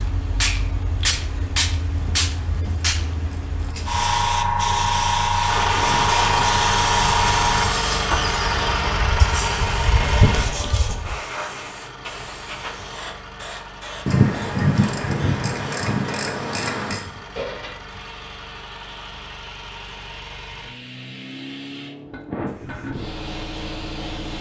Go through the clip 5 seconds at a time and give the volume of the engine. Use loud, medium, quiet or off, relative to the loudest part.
off, loud, medium, quiet, quiet.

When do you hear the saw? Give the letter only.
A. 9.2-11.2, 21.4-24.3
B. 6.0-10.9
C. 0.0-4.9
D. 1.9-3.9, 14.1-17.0
B.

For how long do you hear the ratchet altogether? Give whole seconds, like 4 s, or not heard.
5 s.